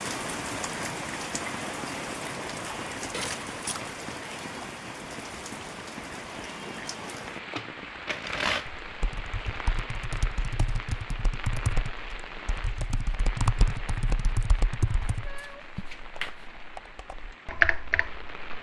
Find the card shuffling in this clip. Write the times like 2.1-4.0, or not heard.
3.1-4.0, 7.2-8.7, 15.3-16.4.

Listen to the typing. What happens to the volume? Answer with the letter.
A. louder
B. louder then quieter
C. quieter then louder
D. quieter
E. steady
A.